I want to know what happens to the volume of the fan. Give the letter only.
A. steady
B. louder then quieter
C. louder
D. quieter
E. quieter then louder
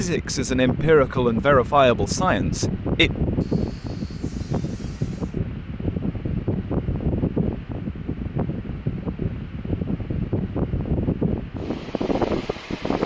A.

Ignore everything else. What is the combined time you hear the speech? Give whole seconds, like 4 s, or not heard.
3 s.